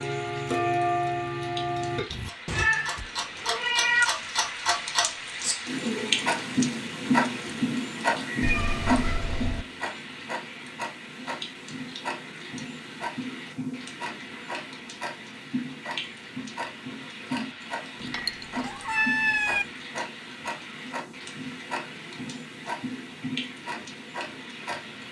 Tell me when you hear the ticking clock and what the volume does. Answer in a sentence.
You can hear the ticking clock from 0.0 to 25.0 s, getting quieter.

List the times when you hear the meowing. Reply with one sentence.
You can hear the meowing from 2.1 to 4.0 s, from 8.4 to 9.7 s and from 18.0 to 19.6 s.